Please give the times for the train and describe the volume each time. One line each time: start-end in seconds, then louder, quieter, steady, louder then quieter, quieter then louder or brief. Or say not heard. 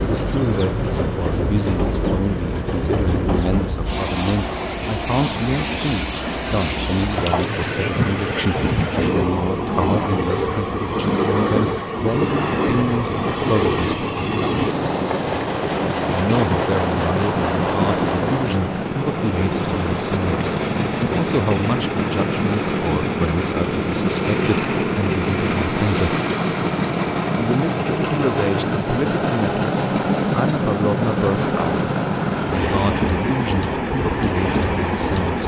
0.0-35.4 steady.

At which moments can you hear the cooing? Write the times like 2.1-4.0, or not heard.
not heard.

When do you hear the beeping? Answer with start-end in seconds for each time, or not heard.
not heard.